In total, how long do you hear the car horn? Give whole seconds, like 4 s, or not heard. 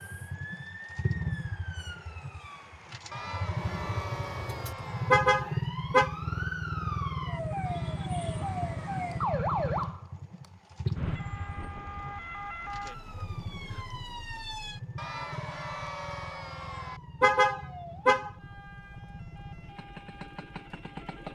2 s.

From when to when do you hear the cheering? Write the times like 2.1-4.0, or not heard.
3.1-5.1, 7.7-9.2, 14.9-17.0.